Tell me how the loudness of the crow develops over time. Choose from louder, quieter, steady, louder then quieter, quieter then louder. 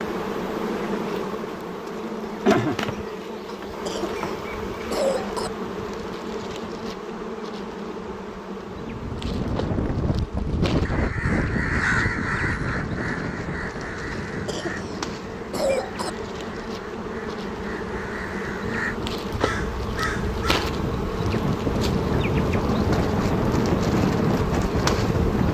quieter then louder.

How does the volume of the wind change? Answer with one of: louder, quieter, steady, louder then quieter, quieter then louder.
quieter then louder.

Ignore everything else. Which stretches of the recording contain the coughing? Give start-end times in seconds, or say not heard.
3.5-5.5, 14.1-16.1.